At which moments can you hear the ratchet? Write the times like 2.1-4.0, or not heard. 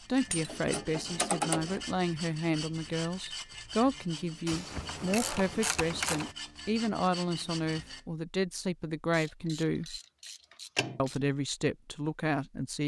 0.2-1.9, 4.5-6.3, 9.1-11.2.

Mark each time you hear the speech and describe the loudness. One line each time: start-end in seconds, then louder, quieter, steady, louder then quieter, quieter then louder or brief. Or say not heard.
0.1-10.0 steady
10.9-12.8 brief.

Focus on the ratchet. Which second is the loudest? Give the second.
1 s.